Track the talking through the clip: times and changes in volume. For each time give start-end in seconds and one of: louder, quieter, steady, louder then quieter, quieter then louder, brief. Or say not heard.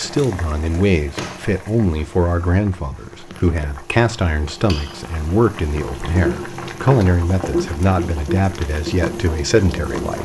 0.0-10.2 steady.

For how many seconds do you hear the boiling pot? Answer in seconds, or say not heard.
10 s.